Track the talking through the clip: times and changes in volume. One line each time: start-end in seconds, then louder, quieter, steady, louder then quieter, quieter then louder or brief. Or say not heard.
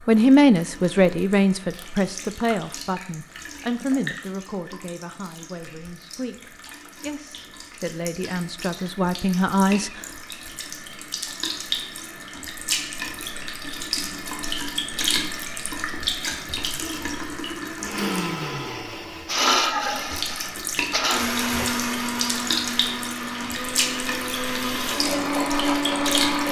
0.1-10.1 quieter then louder.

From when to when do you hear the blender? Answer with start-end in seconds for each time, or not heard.
17.8-26.4.